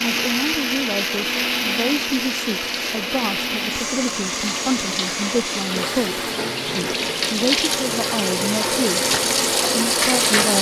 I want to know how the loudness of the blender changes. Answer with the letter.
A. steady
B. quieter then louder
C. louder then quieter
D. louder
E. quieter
E.